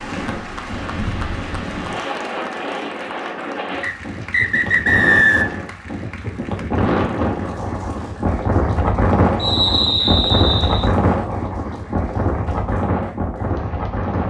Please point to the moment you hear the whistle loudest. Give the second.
5 s.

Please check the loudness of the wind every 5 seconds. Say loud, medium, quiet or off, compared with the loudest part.
medium, loud, loud.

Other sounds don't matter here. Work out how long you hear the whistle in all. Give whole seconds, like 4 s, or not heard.
3 s.